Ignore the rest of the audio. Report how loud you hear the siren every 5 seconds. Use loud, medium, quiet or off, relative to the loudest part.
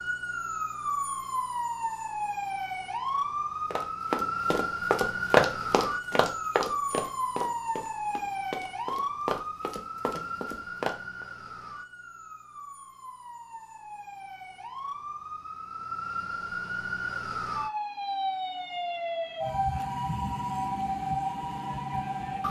loud, loud, medium, loud, loud.